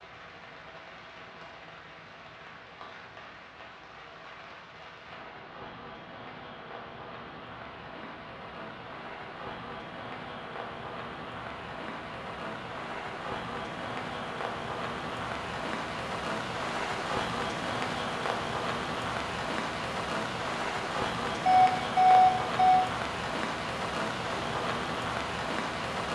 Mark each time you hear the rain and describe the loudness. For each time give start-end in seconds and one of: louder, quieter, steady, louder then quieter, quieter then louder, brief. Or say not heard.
0.0-26.0 louder.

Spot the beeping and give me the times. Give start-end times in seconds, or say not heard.
21.4-22.9.